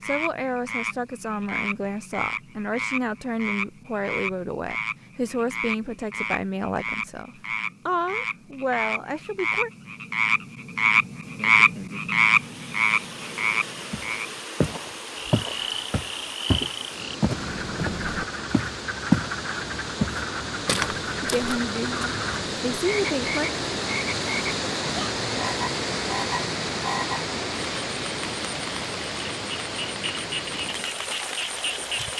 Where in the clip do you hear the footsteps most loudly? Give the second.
19 s.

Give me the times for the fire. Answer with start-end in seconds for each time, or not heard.
not heard.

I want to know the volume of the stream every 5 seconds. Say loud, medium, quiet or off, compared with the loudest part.
off, off, medium, medium, loud, loud, medium.